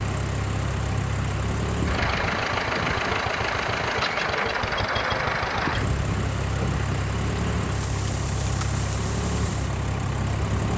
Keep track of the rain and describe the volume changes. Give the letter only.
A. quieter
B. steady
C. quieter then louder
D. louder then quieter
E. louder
B.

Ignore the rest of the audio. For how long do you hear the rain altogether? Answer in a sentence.
The rain can be heard for 11 seconds in total.